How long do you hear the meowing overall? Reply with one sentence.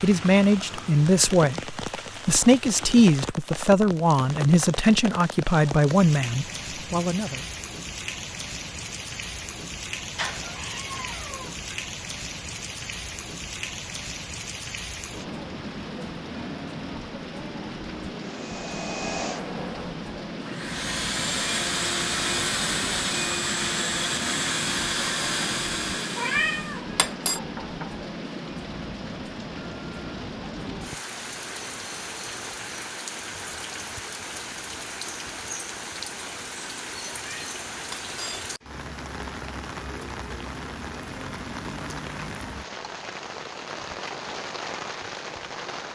The meowing can be heard for 4 seconds in total.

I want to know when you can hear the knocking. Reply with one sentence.
The knocking can be heard from 27.4 to 27.9 s.